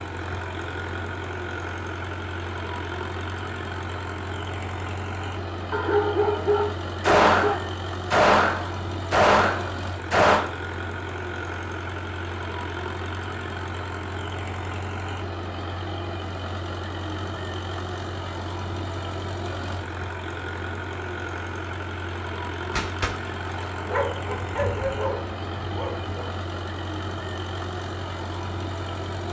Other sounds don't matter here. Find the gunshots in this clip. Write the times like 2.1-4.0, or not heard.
7.0-10.4, 22.8-23.9.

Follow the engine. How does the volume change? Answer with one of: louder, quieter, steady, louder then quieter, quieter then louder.
steady.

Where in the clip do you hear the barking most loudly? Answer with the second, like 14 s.
6 s.